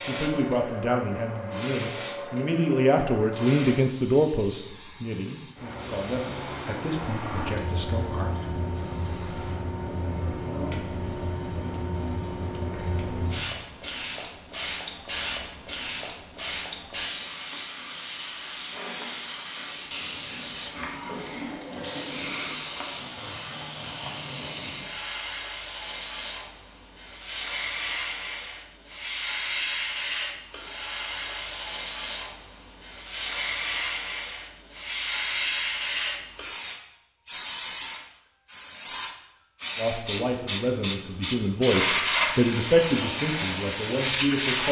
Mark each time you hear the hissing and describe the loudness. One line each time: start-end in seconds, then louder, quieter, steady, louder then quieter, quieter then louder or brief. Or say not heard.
0.0-44.6 louder.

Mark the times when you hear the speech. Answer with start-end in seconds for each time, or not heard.
0.0-8.3, 39.8-44.6.